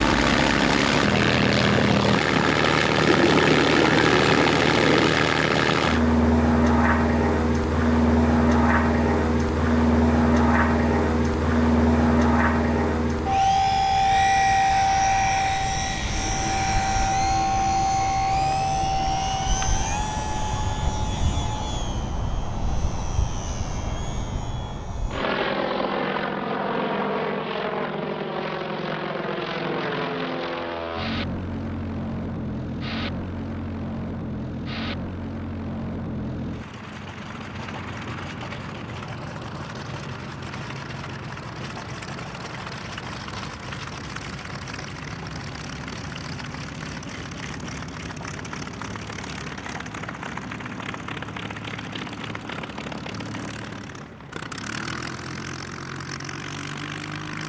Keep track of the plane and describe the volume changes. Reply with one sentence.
The loudness of the plane goes down.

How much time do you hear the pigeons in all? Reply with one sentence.
The pigeons can be heard for 2 seconds in total.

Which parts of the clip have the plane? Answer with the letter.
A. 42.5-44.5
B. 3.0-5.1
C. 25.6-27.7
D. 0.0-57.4
D.